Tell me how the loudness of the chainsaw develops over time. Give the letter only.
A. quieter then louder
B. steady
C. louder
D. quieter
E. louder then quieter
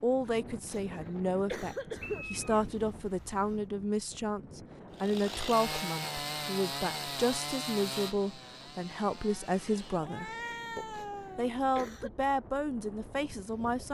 D.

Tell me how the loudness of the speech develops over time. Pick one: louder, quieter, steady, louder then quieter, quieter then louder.
steady.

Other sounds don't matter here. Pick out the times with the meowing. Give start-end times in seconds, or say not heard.
2.0-3.6, 9.9-11.6.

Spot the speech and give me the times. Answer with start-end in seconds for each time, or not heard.
0.0-13.8.